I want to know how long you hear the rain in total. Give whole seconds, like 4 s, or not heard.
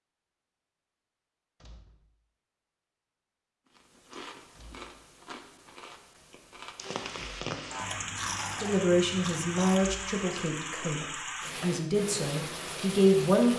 7 s.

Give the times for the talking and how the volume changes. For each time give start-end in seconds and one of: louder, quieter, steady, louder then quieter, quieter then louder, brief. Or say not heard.
8.6-13.5 quieter then louder.